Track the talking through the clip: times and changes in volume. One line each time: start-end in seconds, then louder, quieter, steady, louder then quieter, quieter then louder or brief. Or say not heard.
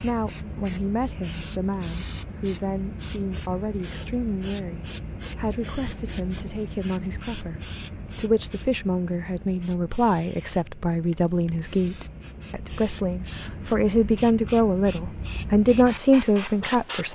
0.0-17.1 louder.